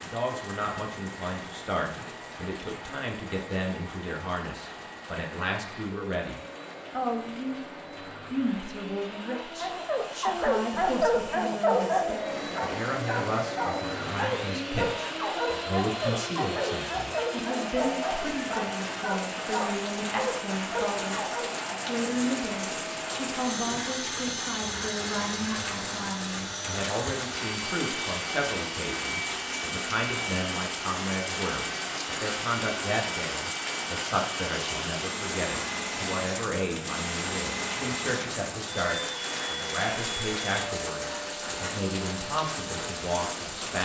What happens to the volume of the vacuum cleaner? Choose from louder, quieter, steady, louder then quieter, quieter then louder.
louder.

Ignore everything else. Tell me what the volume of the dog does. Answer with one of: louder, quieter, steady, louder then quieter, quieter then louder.
quieter.